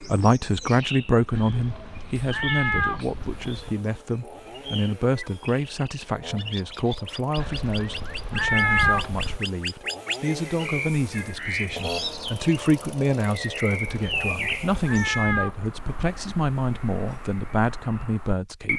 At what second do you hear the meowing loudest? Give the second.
9 s.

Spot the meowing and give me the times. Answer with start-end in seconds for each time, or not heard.
1.3-3.8, 7.3-9.4, 13.8-15.6.